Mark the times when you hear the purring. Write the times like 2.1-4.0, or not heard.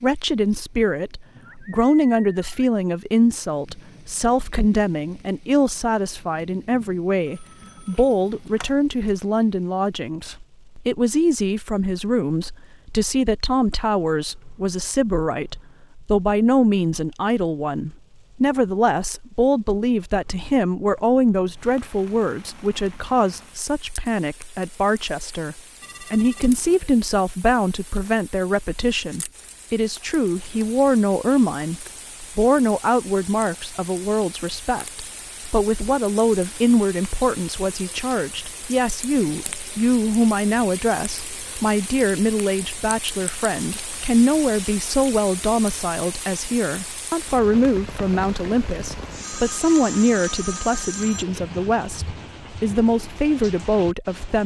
not heard.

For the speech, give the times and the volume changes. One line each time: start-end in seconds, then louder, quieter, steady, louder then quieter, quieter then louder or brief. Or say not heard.
0.0-54.4 steady.